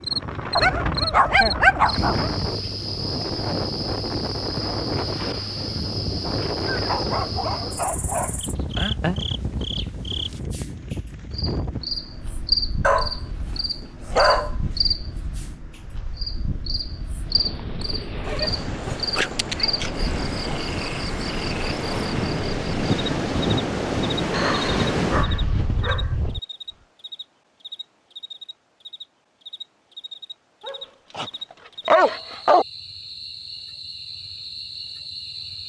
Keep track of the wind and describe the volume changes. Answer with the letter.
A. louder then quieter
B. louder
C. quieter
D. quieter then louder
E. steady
D.